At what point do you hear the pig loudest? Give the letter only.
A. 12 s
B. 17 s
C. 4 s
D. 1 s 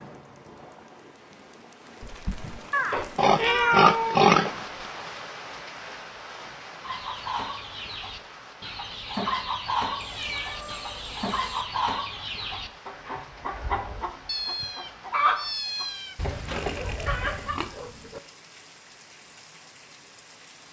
C.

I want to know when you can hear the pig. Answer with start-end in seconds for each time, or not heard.
2.0-4.7, 16.4-18.2.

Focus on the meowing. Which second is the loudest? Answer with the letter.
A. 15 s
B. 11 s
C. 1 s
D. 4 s
D.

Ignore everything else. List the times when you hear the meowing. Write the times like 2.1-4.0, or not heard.
2.7-4.2, 9.9-11.7, 14.2-16.1.